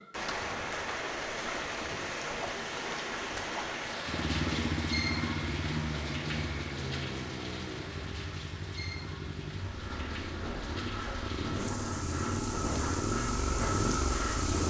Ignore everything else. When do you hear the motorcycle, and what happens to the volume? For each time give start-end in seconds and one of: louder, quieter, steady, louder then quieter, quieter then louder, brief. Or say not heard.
4.0-14.6 quieter then louder.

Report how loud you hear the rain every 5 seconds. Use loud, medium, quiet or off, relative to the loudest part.
loud, medium, medium.